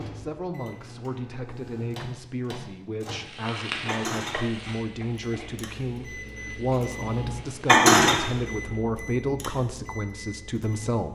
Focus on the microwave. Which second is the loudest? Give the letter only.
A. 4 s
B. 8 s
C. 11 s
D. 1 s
B.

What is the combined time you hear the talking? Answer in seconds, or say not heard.
11 s.